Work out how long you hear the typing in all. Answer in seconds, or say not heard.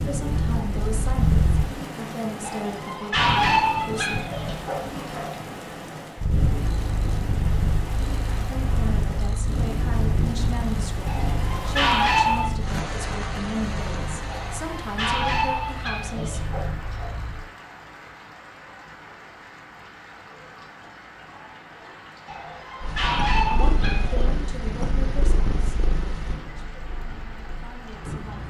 not heard.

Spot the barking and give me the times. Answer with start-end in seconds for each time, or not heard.
2.4-5.4, 11.1-12.5, 14.3-17.1, 22.2-24.4.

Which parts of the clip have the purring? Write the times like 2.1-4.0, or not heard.
0.1-1.8, 6.2-17.4, 22.8-28.4.